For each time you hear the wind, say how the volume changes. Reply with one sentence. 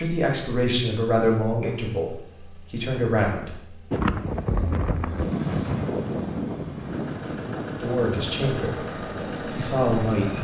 The wind can be heard from 3.9 to 10.3 s, getting quieter.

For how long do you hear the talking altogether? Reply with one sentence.
You can hear the talking for 6 seconds altogether.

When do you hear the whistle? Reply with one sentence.
The whistle can't be heard in this clip.